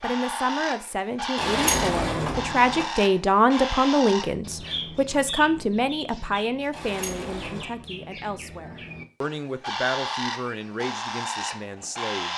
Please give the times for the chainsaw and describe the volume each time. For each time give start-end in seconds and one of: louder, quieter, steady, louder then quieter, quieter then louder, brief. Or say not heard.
not heard.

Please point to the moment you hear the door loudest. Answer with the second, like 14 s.
2 s.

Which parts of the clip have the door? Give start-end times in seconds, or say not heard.
1.4-2.9, 6.7-7.7.